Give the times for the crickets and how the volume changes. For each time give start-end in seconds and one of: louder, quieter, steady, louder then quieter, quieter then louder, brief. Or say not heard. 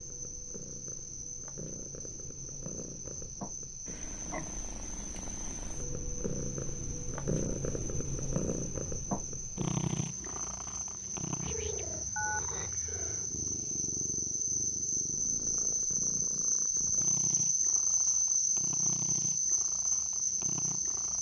0.0-21.1 louder.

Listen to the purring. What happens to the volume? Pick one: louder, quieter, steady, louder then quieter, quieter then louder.
louder then quieter.